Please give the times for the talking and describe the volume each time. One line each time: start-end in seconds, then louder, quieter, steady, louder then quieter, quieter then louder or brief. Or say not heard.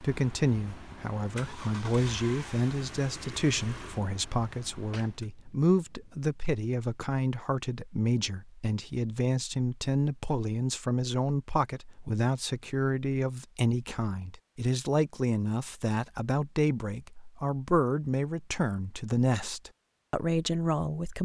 0.0-21.1 steady.